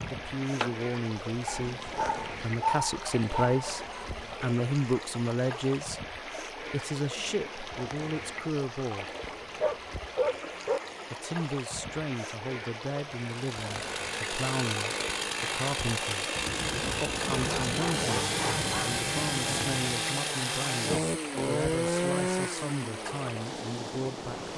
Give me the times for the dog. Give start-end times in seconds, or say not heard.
1.4-4.3, 9.2-10.8, 17.3-19.0.